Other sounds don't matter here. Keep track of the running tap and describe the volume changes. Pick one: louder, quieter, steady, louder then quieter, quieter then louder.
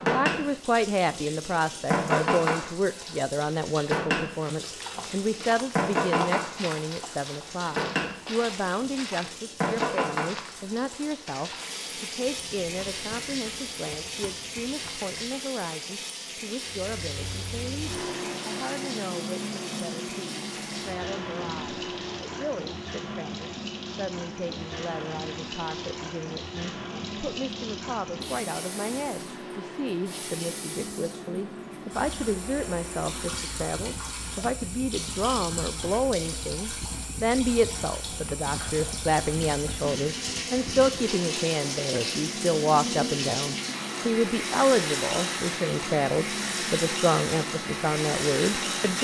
quieter then louder.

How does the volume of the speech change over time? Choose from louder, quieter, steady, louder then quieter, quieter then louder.
quieter then louder.